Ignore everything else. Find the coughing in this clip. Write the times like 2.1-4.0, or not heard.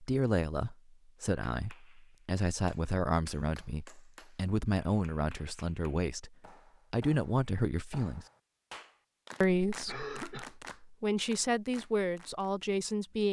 9.8-10.5.